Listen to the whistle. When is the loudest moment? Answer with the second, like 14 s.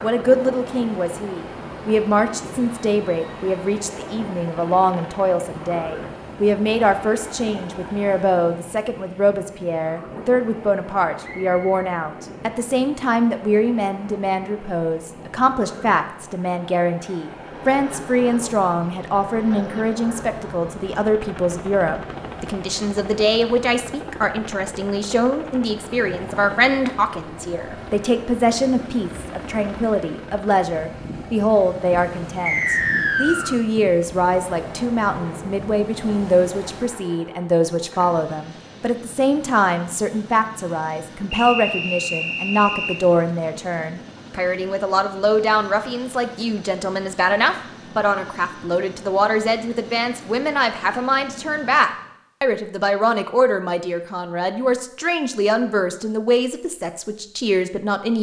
33 s.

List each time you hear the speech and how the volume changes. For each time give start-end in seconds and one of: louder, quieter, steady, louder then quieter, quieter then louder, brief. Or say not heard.
0.0-58.1 steady.